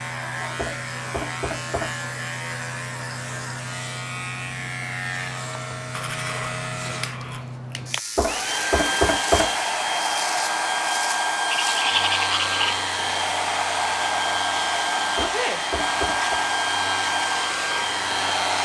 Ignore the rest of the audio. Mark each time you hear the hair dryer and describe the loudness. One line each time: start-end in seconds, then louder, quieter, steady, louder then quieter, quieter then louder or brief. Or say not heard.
8.2-18.6 steady.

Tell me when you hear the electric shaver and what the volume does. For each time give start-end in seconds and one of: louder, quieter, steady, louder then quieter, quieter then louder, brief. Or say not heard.
0.0-18.6 steady.